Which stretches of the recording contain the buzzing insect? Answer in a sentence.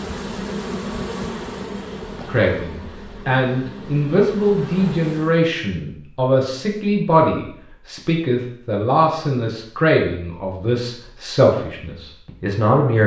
The buzzing insect can be heard from 0.0 to 5.5 s.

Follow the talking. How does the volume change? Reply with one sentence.
The volume of the talking stays about the same.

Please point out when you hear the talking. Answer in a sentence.
You can hear the talking from 2.2 to 13.0 s.